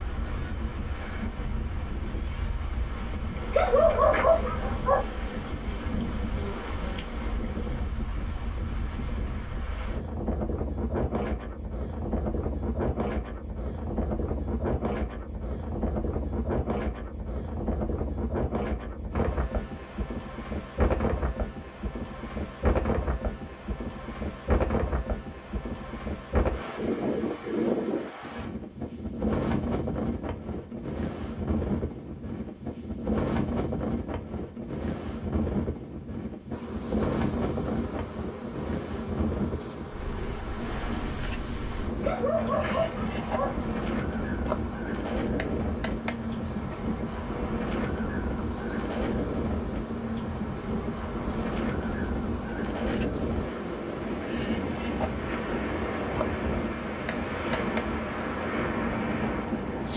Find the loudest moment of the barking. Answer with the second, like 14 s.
4 s.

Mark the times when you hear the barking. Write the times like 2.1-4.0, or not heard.
3.5-5.0, 42.0-43.5.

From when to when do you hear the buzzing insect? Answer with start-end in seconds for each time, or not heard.
3.3-7.8, 36.5-59.9.